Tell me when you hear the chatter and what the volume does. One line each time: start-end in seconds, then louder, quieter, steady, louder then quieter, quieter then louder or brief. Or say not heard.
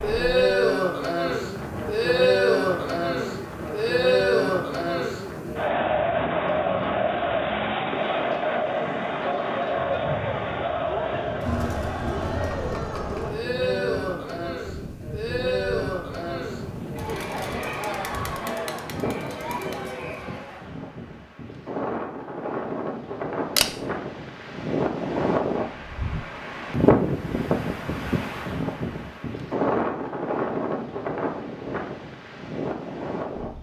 0.0-20.6 quieter.